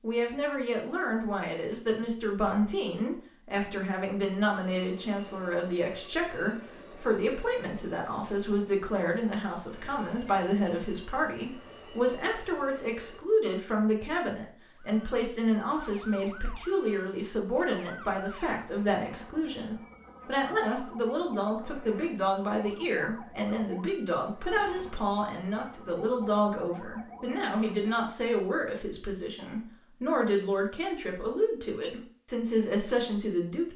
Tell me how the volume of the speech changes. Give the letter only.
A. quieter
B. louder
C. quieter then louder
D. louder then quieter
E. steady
E.